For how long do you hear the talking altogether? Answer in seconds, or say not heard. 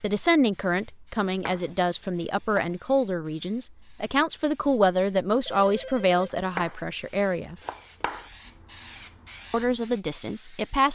9 s.